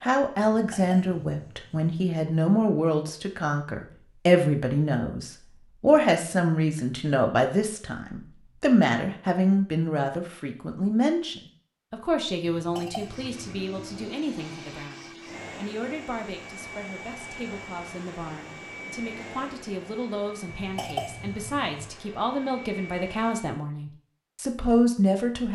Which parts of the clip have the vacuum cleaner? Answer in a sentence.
You can hear the vacuum cleaner from 12.9 to 23.6 s.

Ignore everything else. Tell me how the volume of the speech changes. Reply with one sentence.
The volume of the speech goes down, then up.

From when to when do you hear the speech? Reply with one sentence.
The speech can be heard from 0.0 to 25.4 s.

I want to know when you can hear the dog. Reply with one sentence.
You can't hear the dog here.